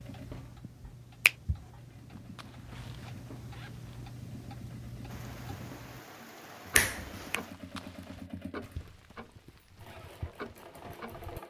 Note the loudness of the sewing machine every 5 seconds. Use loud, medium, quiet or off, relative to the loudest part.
medium, loud, loud.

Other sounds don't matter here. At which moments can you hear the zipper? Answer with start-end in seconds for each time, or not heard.
2.1-4.1, 7.5-8.2.